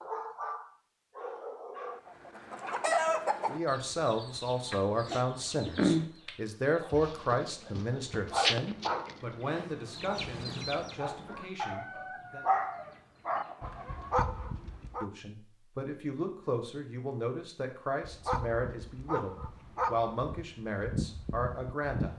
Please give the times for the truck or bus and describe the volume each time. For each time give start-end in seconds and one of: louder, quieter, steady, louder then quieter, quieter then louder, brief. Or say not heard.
not heard.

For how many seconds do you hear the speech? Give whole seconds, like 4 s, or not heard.
16 s.